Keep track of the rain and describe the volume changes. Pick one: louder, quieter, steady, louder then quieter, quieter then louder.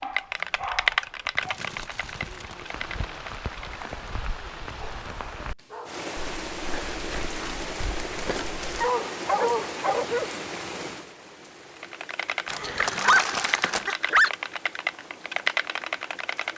louder then quieter.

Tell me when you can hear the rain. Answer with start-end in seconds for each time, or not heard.
0.0-16.5.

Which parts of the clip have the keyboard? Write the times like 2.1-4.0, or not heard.
0.0-3.9, 11.8-16.5.